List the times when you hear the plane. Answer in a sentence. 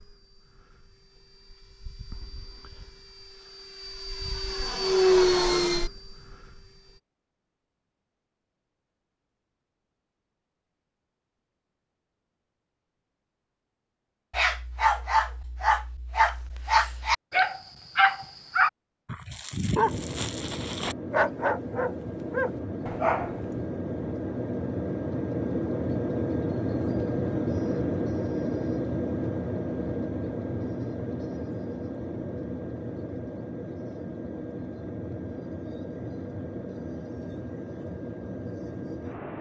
The plane can be heard from 0.0 to 7.0 s and from 19.8 to 39.3 s.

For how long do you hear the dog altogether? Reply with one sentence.
The dog can be heard for 9 seconds in total.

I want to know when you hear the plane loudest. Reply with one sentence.
The loudest moment of the plane is at 5 seconds.